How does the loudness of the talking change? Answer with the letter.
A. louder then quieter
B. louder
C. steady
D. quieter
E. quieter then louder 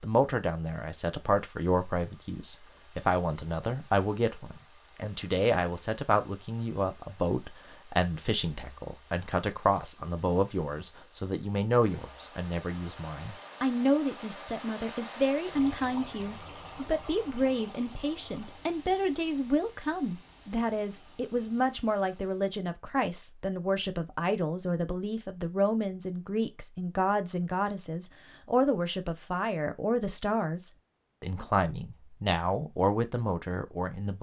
C.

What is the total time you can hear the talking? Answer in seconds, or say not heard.
34 s.